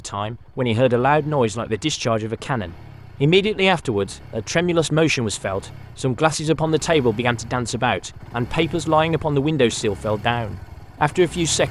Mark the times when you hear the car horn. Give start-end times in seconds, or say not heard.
not heard.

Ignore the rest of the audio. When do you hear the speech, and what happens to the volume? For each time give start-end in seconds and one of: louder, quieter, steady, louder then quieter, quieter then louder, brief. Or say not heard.
0.0-11.6 steady.